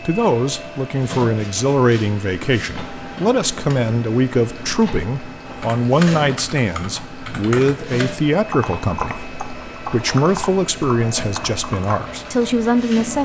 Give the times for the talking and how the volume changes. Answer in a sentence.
The talking can be heard from 0.1 to 13.2 s, at a steady volume.